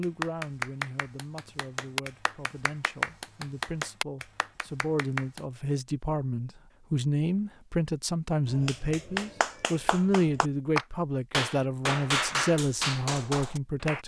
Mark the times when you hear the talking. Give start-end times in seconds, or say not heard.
0.0-14.0.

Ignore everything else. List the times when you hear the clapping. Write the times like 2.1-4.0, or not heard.
0.0-5.4, 8.4-14.0.